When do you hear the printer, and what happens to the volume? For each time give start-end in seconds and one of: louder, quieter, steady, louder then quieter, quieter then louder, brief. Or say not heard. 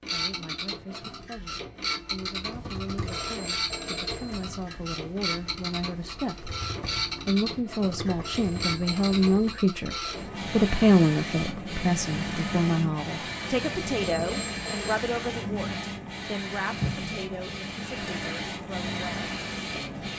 0.0-20.1 steady.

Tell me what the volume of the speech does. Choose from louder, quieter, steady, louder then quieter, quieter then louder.
louder then quieter.